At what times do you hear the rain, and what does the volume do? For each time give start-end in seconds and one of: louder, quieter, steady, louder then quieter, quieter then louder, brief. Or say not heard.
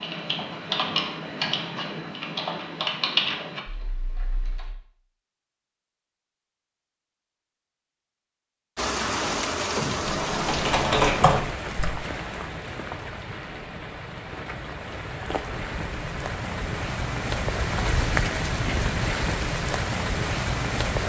8.8-21.0 quieter then louder.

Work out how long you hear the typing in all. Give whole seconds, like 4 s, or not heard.
7 s.